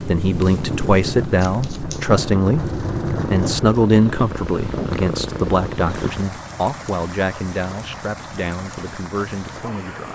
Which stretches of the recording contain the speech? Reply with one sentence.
The speech can be heard from 0.1 to 10.0 s.